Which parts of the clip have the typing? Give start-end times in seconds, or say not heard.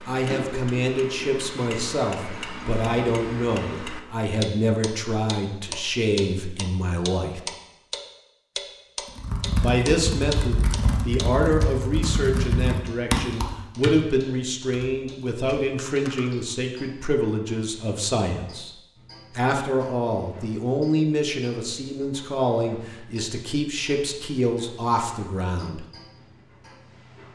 9.2-16.5.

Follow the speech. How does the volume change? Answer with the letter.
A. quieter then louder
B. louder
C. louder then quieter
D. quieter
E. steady
E.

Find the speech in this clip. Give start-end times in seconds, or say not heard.
0.1-7.4, 9.6-18.7, 19.4-25.9.